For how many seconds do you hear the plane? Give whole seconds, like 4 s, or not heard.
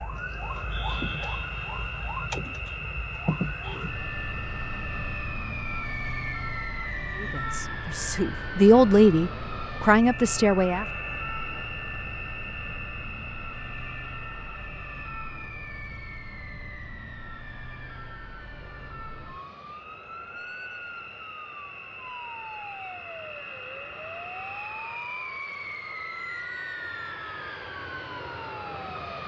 29 s.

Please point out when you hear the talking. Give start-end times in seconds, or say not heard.
7.2-10.8.